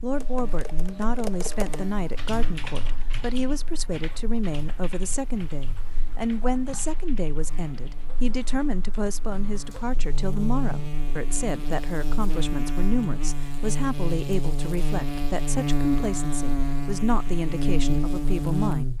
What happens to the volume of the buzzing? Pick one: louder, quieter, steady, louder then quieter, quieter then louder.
quieter then louder.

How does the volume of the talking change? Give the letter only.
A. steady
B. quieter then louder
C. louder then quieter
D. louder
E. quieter
A.